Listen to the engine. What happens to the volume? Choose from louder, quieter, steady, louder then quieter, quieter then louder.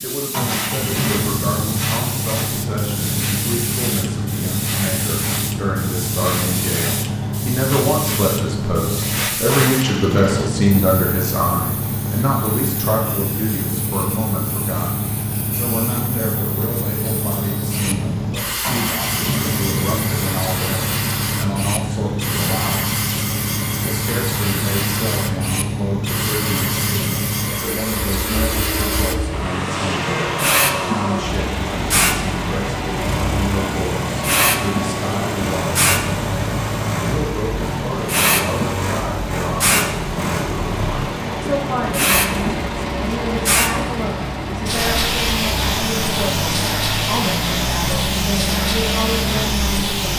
steady.